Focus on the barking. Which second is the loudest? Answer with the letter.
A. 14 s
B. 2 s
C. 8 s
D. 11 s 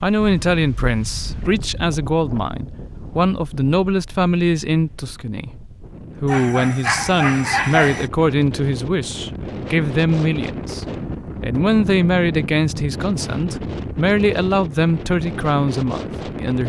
C.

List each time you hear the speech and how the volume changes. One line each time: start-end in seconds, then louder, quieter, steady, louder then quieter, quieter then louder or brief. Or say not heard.
0.0-16.6 steady.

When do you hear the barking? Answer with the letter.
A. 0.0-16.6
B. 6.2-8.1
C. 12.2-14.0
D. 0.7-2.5
B.